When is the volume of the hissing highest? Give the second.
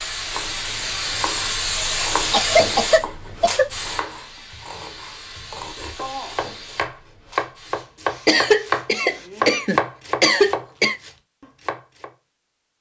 2 s.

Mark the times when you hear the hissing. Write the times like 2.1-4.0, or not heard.
0.0-9.3.